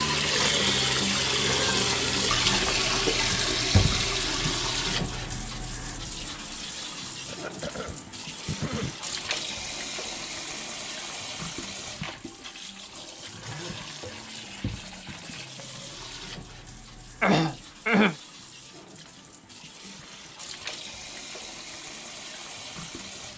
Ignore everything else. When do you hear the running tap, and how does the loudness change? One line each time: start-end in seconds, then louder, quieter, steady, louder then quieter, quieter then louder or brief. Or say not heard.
0.0-23.3 quieter.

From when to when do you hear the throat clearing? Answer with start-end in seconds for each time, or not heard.
7.2-8.9, 17.2-18.1.